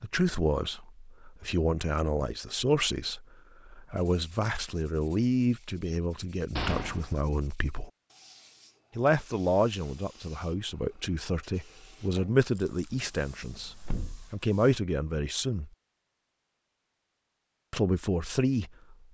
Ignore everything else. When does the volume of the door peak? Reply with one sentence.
The volume of the door peaks at 7 seconds.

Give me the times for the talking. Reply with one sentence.
You can hear the talking from 0.0 to 7.9 s, from 8.9 to 15.7 s and from 17.7 to 19.1 s.